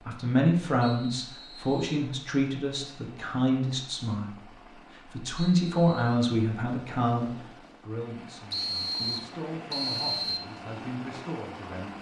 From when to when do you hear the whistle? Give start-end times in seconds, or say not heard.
0.8-2.0, 5.4-6.2, 8.5-10.4.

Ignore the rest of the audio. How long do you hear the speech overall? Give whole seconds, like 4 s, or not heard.
12 s.